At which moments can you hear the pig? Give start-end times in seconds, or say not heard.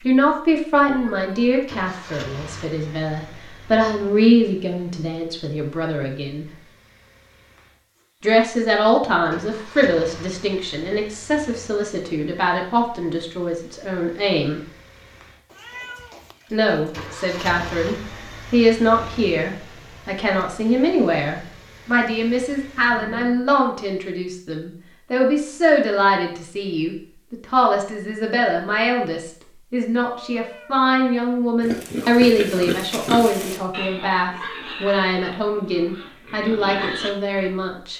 31.6-37.5.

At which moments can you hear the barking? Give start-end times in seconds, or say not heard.
not heard.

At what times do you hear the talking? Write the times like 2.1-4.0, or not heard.
0.0-6.5, 8.2-14.6, 16.5-37.9.